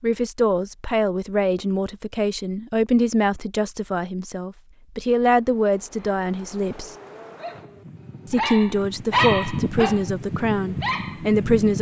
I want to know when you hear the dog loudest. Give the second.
9 s.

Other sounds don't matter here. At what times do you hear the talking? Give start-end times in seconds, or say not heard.
0.0-7.0, 8.3-11.7.